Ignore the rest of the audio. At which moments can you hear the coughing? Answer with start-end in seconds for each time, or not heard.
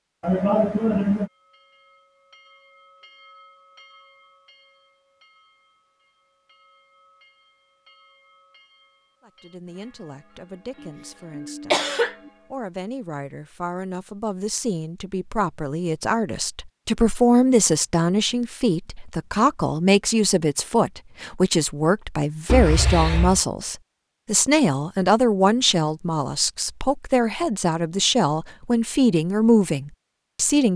0.2-1.3, 10.8-12.3, 22.4-23.4.